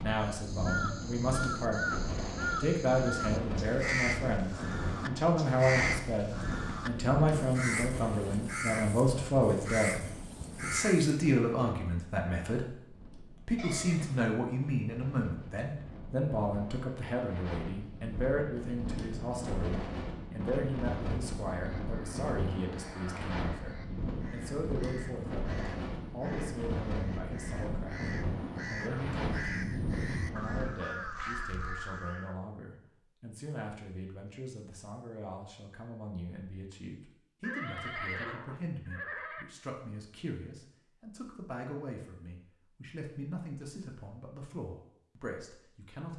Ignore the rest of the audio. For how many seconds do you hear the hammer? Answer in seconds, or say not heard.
not heard.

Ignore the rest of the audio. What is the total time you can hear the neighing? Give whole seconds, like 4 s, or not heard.
3 s.